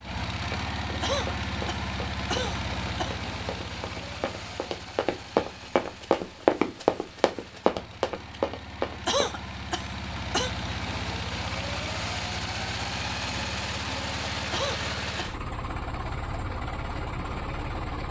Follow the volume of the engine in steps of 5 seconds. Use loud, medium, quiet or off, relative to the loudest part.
loud, medium, loud, loud.